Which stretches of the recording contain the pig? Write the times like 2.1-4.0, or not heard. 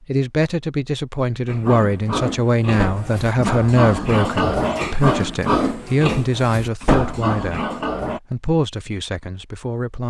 1.4-8.2.